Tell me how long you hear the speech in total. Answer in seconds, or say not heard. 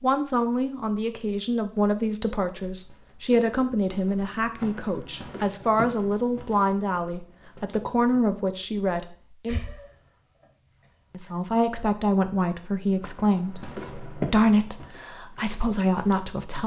15 s.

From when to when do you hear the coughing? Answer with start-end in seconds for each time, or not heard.
9.4-10.4, 11.2-11.8.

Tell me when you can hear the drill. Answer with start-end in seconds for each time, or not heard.
not heard.